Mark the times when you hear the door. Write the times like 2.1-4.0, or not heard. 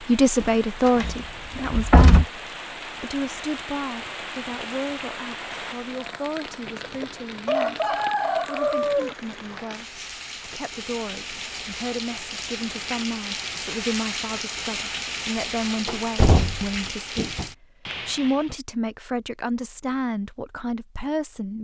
0.4-2.2, 15.8-17.4.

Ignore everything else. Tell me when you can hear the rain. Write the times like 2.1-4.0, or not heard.
0.0-18.6.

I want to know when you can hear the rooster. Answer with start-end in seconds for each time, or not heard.
6.7-9.7.